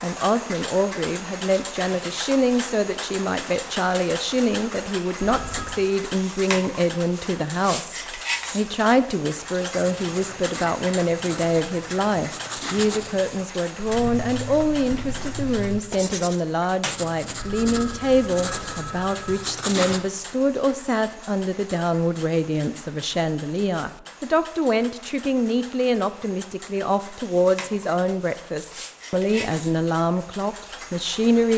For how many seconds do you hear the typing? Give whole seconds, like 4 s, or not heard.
not heard.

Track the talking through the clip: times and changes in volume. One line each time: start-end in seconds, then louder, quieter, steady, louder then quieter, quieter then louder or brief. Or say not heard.
0.0-31.5 steady.